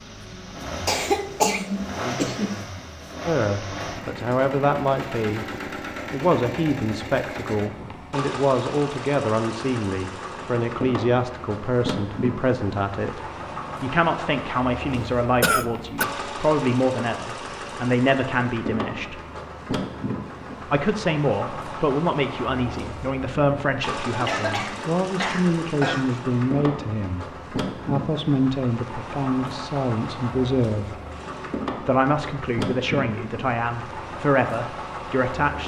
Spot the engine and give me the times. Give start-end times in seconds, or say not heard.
0.0-35.6.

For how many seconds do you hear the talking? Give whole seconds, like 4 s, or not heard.
28 s.